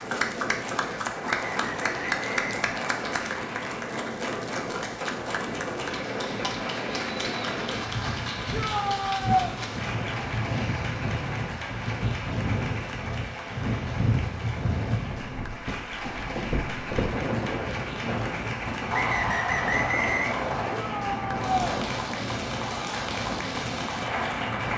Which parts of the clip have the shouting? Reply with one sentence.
The shouting can be heard from 8.5 to 9.5 s and from 20.8 to 21.8 s.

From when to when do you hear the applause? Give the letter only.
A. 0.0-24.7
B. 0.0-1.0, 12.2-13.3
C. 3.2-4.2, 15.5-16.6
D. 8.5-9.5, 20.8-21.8
A.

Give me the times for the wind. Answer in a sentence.
You can hear the wind from 0.0 to 24.7 s.